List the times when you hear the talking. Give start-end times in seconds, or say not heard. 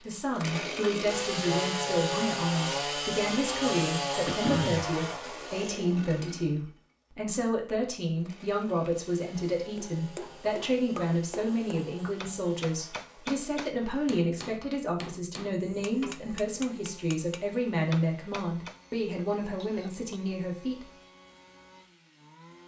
0.0-20.9.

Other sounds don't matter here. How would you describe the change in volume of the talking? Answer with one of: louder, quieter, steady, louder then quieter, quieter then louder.
steady.